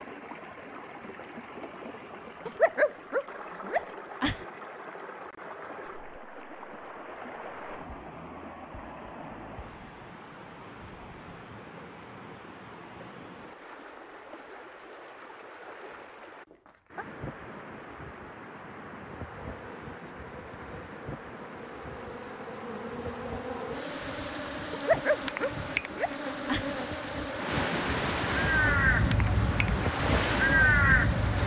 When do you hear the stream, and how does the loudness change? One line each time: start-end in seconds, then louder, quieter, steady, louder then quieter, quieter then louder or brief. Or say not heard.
0.0-31.4 louder.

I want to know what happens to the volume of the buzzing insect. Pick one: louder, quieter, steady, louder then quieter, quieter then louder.
louder.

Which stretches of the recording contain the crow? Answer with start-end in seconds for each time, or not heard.
28.4-31.4.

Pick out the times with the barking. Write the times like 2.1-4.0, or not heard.
2.5-4.4, 24.7-26.7.